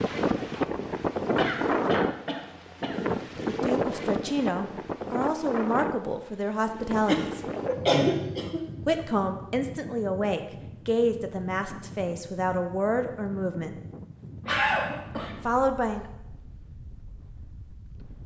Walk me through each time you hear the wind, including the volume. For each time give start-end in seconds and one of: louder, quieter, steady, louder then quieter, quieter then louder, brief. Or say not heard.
0.0-18.2 quieter.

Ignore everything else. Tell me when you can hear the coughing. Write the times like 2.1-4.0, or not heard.
1.3-3.2, 7.0-9.0, 14.4-15.4.